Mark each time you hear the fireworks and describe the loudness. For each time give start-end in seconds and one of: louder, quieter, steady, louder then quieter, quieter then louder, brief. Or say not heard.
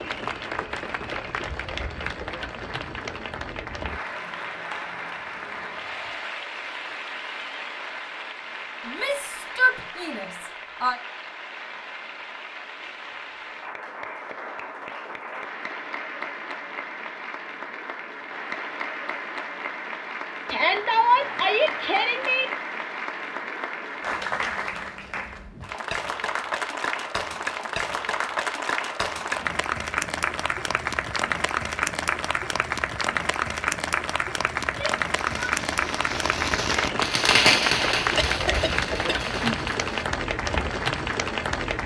34.5-40.0 louder then quieter.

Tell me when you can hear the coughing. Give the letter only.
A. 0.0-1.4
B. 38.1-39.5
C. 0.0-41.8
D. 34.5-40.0
B.